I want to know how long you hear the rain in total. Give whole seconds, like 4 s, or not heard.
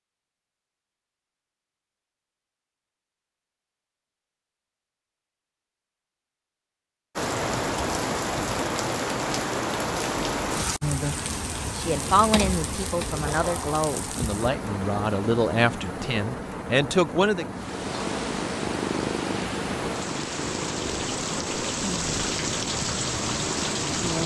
17 s.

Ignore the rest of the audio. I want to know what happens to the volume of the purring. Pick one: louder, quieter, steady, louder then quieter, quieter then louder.
quieter.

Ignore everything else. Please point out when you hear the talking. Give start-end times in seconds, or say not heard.
11.7-17.4.